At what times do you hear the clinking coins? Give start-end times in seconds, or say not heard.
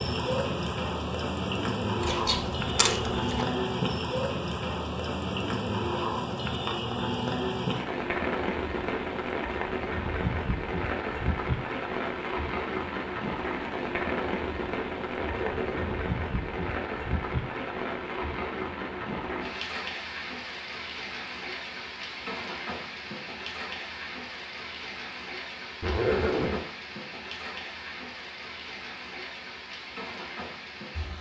2.0-3.5.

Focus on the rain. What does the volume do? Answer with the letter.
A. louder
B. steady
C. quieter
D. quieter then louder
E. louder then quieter
C.